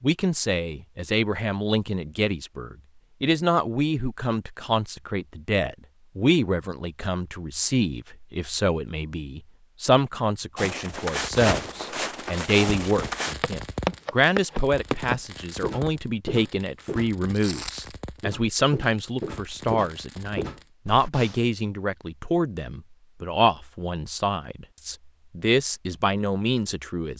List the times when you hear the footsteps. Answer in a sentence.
You can hear the footsteps from 10.6 to 21.1 s.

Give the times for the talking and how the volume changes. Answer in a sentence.
You can hear the talking from 0.0 to 27.1 s, at a steady volume.